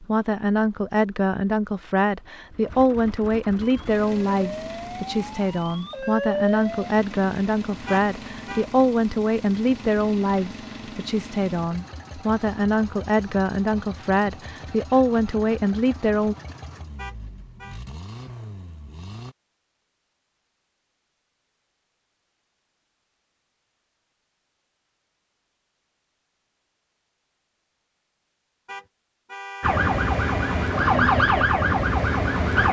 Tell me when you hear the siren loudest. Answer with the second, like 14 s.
31 s.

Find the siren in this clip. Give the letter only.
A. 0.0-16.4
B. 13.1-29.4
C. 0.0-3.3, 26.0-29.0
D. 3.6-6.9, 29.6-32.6
D.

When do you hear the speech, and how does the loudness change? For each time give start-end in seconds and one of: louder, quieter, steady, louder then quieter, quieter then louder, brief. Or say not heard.
0.0-16.4 steady.